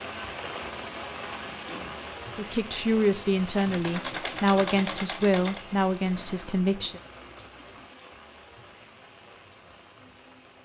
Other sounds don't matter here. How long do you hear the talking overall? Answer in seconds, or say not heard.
5 s.